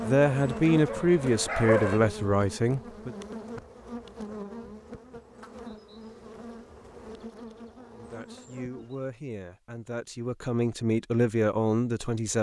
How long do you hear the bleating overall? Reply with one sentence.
The bleating can't be heard in this clip.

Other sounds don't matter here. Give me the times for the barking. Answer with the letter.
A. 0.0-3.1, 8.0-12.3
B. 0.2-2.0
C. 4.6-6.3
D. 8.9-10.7
B.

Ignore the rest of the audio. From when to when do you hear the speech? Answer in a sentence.
You can hear the speech from 0.0 to 3.1 s and from 8.0 to 12.3 s.